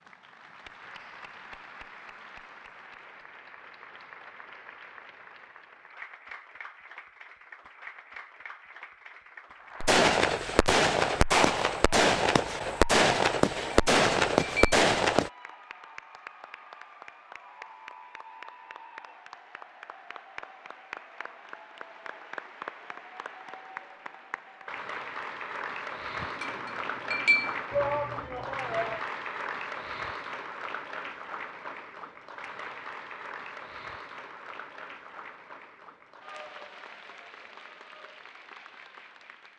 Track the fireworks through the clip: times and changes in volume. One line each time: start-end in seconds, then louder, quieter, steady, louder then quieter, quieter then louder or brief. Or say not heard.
9.8-15.3 steady.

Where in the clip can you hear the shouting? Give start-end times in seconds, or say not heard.
27.7-29.1.